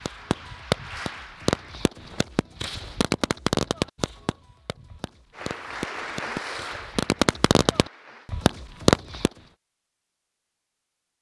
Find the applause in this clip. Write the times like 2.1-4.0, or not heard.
0.0-1.8, 5.3-8.3.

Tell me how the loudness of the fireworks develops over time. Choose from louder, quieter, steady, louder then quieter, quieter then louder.
quieter then louder.